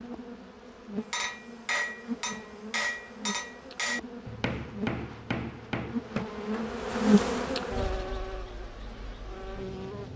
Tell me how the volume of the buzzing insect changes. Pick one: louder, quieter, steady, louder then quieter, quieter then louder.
louder then quieter.